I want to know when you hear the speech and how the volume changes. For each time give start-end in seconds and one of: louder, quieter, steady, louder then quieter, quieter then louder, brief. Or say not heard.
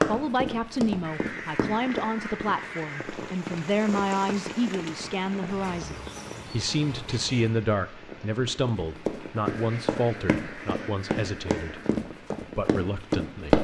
0.0-11.8 steady
12.6-13.5 brief.